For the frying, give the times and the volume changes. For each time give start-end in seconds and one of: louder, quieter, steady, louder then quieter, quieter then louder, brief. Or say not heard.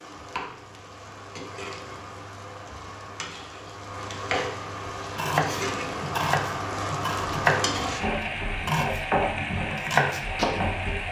0.0-11.0 louder.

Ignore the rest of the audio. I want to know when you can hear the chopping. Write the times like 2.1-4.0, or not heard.
5.2-10.7.